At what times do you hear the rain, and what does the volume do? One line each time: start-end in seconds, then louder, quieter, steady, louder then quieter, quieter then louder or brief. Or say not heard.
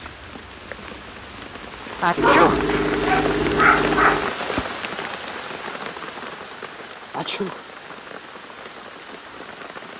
0.0-9.9 louder then quieter.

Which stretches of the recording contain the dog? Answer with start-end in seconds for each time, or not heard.
2.1-4.3.